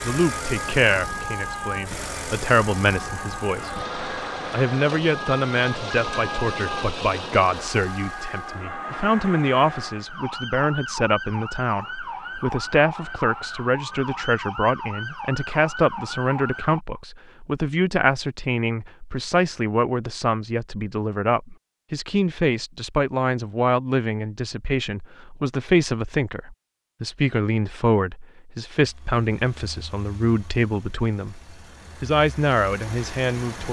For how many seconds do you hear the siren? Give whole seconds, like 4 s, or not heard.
17 s.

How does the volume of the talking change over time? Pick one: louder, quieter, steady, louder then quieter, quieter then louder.
steady.